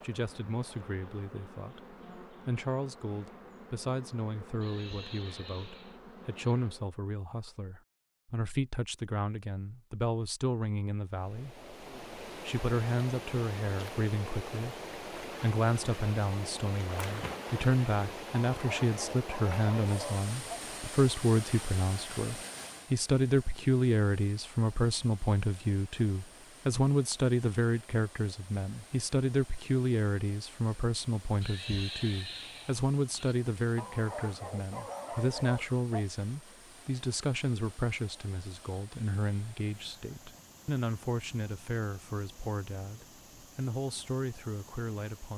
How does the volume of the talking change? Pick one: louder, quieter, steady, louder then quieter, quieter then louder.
louder then quieter.